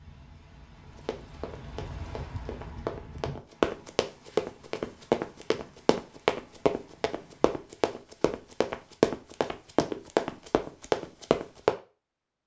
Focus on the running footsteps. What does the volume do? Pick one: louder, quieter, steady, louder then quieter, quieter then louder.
louder.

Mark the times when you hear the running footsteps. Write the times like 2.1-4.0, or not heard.
0.9-11.8.